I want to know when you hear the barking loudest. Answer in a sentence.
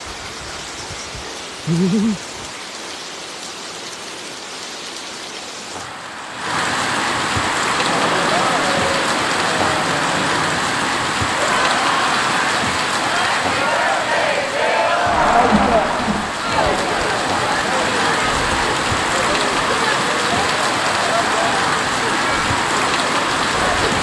The loudest moment of the barking is at 2 seconds.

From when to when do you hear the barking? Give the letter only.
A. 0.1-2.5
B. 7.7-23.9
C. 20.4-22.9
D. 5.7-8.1
A.